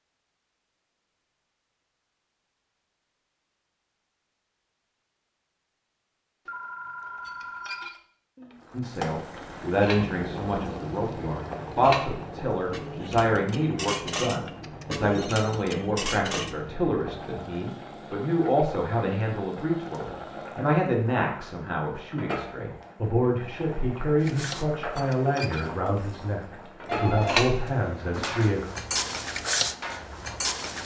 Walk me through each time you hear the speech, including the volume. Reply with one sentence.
The speech can be heard from 8.7 to 28.6 s, at a steady volume.